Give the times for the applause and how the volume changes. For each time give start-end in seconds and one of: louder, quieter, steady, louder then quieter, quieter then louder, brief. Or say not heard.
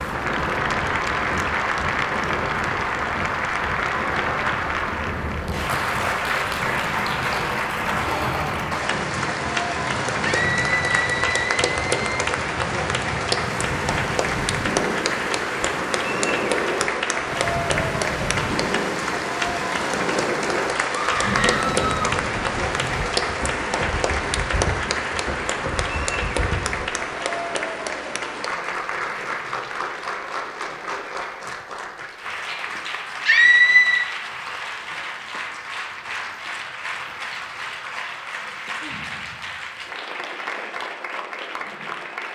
0.0-42.3 quieter.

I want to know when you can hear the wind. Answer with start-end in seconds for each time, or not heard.
0.0-26.9.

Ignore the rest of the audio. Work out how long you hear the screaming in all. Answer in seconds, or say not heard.
4 s.